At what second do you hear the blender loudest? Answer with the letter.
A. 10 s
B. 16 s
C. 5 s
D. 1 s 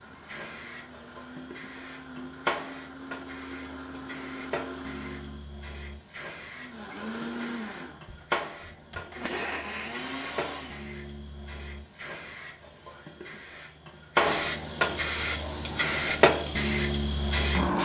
A.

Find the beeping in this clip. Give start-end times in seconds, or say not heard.
not heard.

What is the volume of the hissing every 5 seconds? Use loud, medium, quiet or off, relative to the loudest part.
quiet, quiet, medium, loud.